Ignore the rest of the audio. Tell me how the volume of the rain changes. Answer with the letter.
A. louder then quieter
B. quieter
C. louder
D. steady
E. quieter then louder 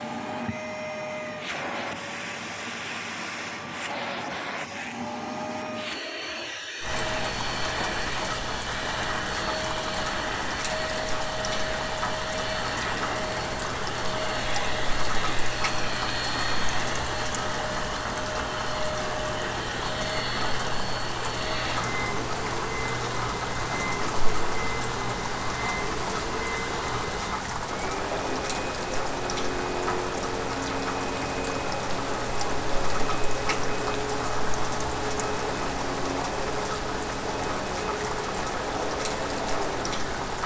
D.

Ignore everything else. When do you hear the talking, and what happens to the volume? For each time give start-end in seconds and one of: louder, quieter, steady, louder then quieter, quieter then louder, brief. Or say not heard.
not heard.